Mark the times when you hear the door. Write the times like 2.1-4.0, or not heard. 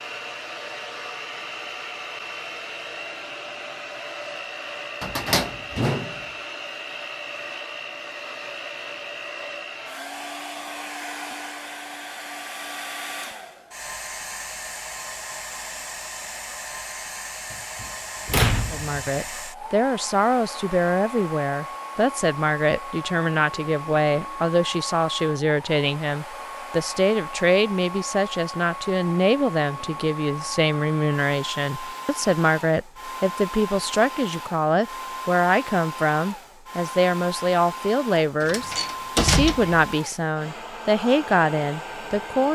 5.0-6.2, 17.5-19.0, 38.4-39.9.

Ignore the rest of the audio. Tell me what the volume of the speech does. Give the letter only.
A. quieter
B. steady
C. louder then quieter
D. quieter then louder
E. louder
B.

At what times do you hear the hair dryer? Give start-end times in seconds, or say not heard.
0.0-42.4.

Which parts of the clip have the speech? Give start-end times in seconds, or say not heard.
18.7-42.4.